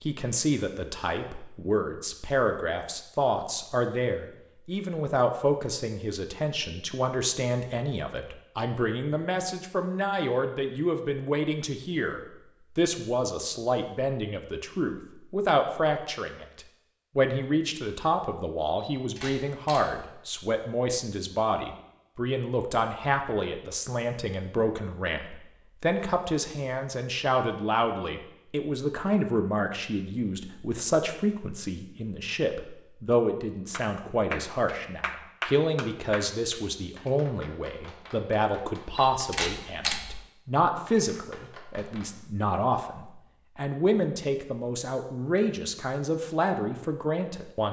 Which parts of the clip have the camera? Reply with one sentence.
You can hear the camera from 18.8 to 20.1 s and from 39.0 to 40.2 s.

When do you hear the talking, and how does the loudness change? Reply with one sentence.
You can hear the talking from 0.0 to 47.6 s, at a steady volume.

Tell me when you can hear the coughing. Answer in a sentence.
The coughing can't be heard in this clip.